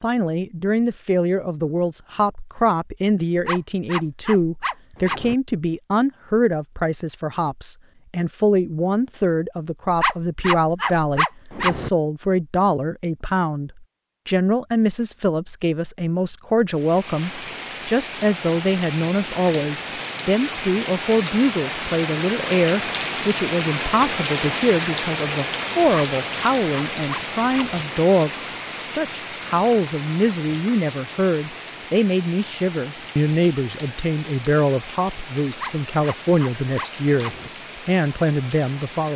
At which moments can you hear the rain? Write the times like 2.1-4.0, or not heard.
16.7-39.1.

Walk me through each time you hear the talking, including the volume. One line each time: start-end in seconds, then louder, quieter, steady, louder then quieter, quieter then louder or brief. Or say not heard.
0.0-39.1 steady.